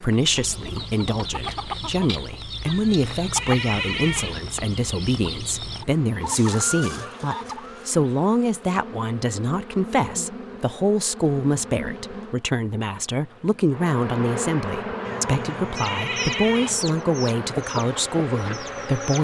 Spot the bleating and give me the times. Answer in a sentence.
The bleating can be heard from 2.6 to 4.4 s and from 15.1 to 16.8 s.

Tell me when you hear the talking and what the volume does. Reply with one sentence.
You can hear the talking from 0.0 to 19.1 s, at a steady volume.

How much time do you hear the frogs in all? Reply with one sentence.
You can't hear the frogs here.